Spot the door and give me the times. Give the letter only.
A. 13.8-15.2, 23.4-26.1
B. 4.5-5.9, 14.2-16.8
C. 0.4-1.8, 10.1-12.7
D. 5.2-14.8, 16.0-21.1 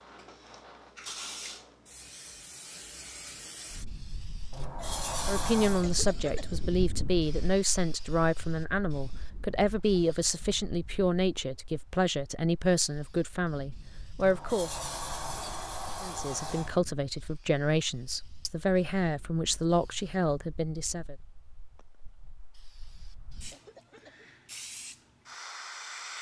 B.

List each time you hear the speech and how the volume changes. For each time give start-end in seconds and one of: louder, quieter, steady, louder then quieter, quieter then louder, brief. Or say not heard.
5.2-14.8 steady
16.0-21.1 steady.